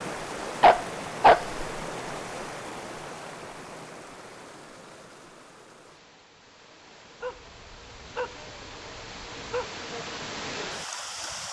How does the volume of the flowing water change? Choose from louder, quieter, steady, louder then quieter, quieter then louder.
quieter then louder.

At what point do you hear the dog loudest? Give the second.
1 s.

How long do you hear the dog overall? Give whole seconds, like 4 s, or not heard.
3 s.